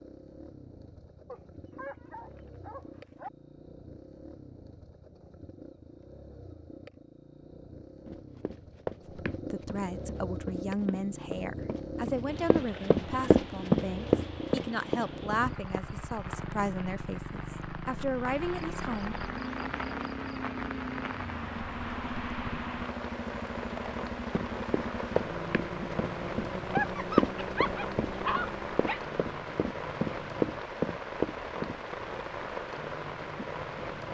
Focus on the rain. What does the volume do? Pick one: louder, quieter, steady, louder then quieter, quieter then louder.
louder.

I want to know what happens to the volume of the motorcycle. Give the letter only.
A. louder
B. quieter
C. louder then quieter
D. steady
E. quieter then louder
A.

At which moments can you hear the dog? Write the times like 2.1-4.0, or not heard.
1.2-3.3, 26.7-29.0.